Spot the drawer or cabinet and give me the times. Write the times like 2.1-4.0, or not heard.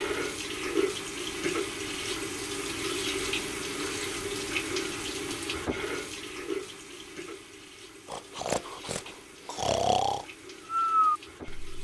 not heard.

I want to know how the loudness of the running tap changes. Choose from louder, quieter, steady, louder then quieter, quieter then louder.
quieter.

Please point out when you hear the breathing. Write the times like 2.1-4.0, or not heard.
8.1-11.8.